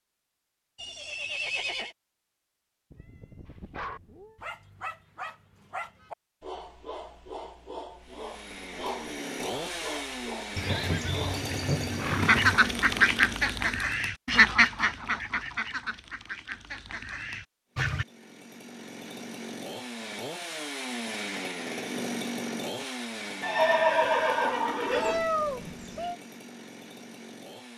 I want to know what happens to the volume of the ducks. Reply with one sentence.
The loudness of the ducks goes down.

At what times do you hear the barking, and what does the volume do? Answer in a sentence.
The barking can be heard from 3.7 to 11.4 s, at a steady volume.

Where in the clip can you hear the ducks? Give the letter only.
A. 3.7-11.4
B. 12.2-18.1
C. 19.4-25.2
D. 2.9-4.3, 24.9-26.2
B.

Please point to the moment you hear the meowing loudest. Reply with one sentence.
The loudest moment of the meowing is at 25 seconds.